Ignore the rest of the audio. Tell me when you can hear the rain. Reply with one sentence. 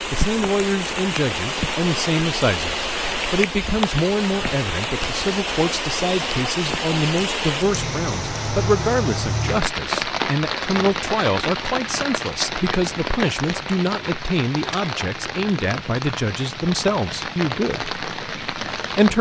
The rain can be heard from 0.0 to 19.1 s.